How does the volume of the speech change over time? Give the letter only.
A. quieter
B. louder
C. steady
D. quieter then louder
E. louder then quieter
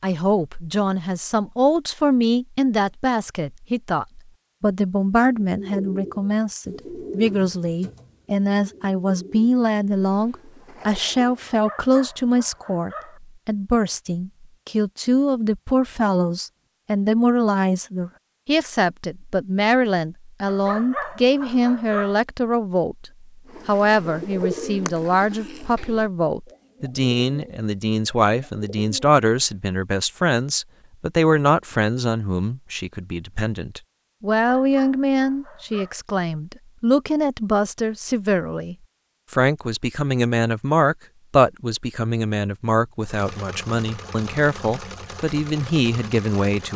C.